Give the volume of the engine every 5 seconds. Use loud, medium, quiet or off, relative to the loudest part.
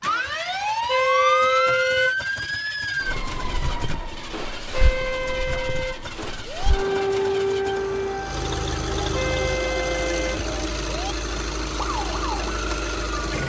medium, loud, loud.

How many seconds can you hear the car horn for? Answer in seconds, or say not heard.
5 s.